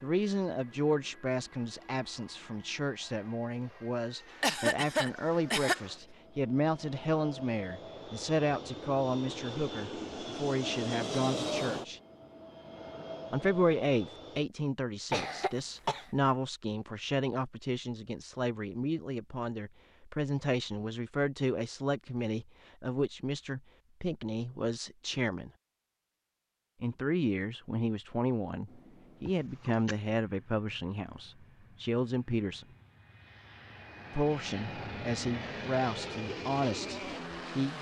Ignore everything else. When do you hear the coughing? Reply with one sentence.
You can hear the coughing from 4.4 to 5.8 s, from 15.1 to 16.1 s and from 29.2 to 29.9 s.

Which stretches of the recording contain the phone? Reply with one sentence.
You can't hear the phone here.